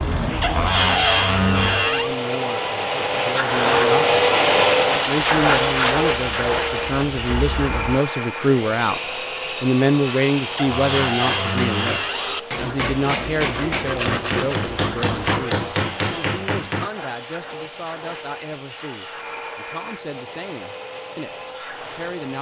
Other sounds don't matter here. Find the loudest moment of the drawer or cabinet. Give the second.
1 s.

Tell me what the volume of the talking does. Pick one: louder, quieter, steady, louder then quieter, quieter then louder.
louder then quieter.